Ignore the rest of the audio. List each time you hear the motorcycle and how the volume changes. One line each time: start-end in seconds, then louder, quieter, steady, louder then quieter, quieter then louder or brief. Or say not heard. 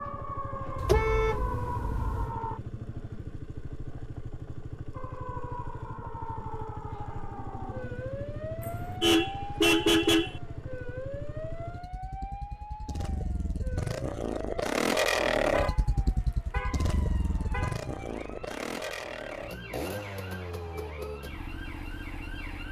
0.0-22.6 louder then quieter.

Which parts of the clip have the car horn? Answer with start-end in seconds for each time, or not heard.
0.8-2.3, 8.6-10.4, 15.5-17.8.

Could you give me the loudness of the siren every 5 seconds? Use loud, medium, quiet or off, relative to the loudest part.
loud, loud, medium, medium, medium.